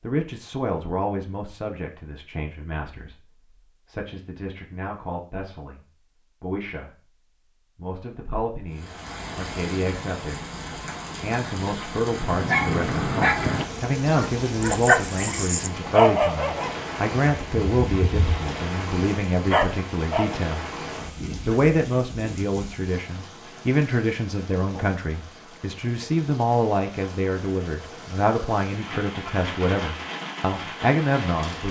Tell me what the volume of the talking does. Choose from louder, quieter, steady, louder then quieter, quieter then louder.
louder.